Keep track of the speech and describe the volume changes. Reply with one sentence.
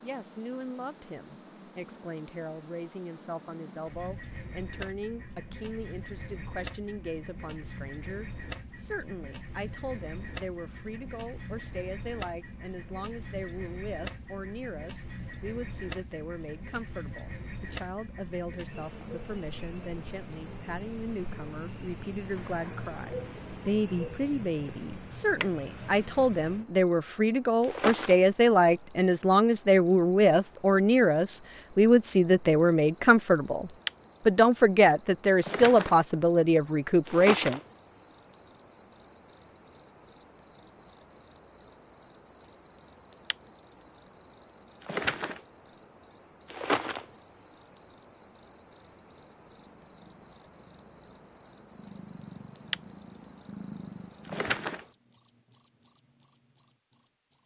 The volume of the speech goes up.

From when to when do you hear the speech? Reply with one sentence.
The speech can be heard from 0.0 to 37.6 s.